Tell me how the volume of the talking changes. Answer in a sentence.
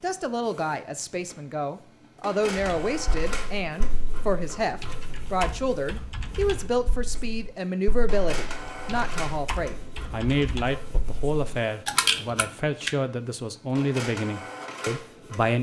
The volume of the talking stays about the same.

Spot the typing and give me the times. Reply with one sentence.
The typing can be heard from 2.5 to 12.9 s.